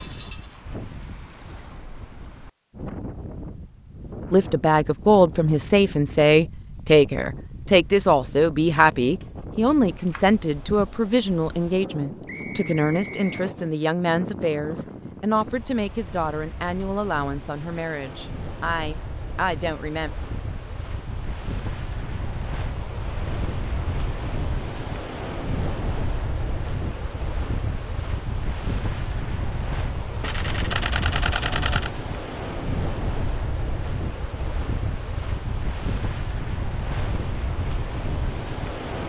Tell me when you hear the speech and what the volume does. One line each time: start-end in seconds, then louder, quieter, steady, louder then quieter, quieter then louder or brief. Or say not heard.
4.3-20.1 quieter.